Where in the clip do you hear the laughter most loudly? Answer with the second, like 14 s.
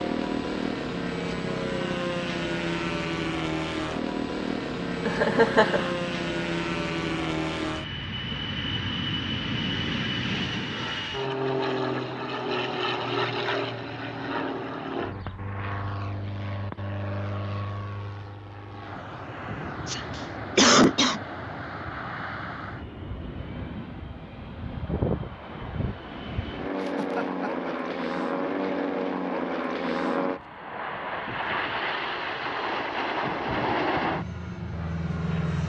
21 s.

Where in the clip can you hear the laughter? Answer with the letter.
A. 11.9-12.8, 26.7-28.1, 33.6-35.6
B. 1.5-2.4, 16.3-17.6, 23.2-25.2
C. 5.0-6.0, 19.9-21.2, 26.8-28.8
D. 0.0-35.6
C.